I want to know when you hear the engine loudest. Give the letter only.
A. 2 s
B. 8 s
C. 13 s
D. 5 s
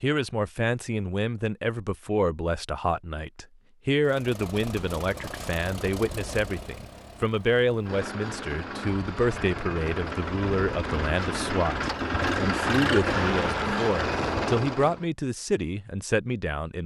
C.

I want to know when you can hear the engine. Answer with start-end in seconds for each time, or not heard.
4.0-15.1.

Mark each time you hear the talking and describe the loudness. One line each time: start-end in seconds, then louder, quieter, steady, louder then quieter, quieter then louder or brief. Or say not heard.
0.0-16.8 steady.